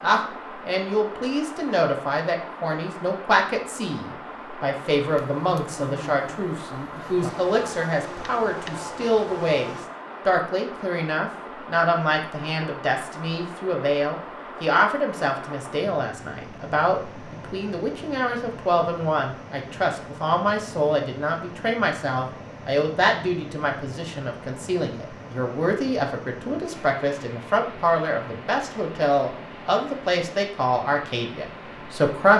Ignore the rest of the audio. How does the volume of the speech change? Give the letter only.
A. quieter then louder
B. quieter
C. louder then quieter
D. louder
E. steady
E.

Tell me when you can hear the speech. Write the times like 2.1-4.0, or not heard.
0.0-32.3.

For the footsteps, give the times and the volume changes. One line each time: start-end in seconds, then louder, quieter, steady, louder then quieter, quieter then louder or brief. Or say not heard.
not heard.